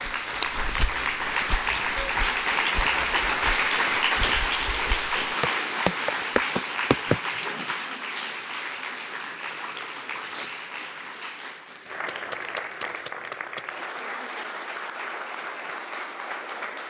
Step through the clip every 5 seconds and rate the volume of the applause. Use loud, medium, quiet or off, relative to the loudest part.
loud, medium, medium, medium.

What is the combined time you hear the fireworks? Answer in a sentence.
The fireworks can't be heard in this clip.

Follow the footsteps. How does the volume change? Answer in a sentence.
The loudness of the footsteps goes down, then up.